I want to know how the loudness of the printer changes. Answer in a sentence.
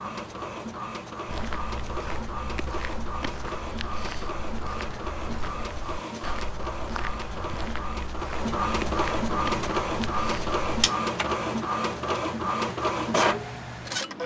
The volume of the printer goes up.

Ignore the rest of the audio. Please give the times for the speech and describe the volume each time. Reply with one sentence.
The speech can't be heard in this clip.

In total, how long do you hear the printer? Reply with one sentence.
You can hear the printer for 14 seconds altogether.